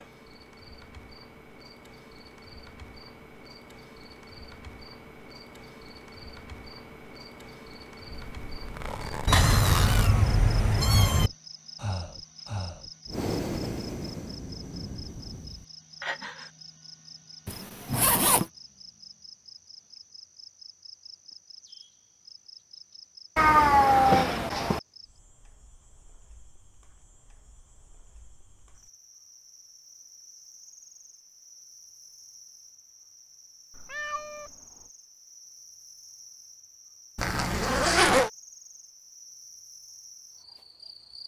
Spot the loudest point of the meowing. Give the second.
24 s.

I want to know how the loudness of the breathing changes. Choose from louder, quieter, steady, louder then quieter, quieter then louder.
louder then quieter.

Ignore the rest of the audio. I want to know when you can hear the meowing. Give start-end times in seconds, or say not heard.
9.2-11.3, 23.4-24.8, 33.7-34.9.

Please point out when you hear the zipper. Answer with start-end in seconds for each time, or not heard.
8.1-10.1, 17.4-18.5, 37.1-38.3.